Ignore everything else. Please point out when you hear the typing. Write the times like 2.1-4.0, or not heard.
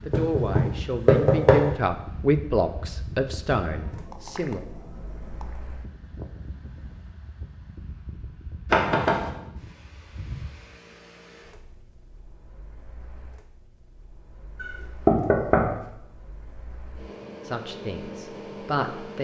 3.7-5.6.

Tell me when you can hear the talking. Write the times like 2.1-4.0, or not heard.
0.1-4.6, 17.4-19.1.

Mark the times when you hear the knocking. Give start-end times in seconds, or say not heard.
0.1-1.6, 8.7-9.3, 14.6-15.8.